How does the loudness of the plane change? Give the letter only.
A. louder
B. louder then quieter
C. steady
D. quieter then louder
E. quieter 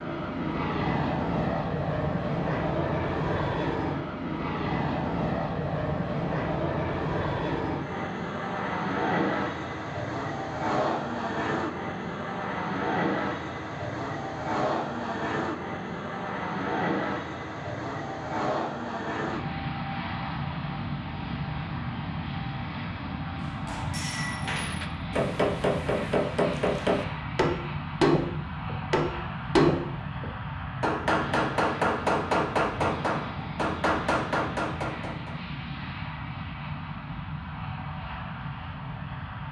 E.